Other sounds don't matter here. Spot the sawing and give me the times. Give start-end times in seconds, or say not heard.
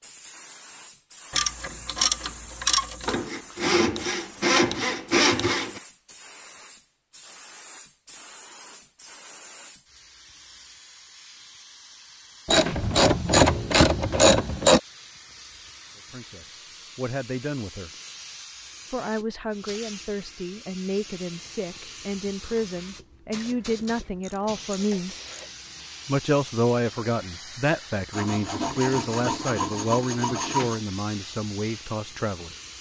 3.0-5.8, 28.1-30.8.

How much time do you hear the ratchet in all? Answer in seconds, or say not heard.
6 s.